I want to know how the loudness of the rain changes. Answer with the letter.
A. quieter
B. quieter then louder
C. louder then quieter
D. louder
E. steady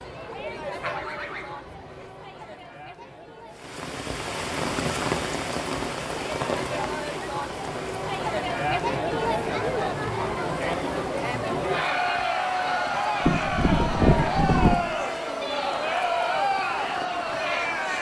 A.